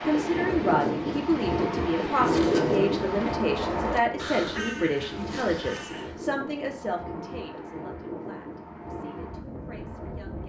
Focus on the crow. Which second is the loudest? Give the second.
4 s.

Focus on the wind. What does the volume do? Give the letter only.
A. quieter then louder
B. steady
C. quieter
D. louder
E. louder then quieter
C.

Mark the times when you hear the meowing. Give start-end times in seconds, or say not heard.
2.2-3.0.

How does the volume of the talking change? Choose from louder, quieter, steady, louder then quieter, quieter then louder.
quieter.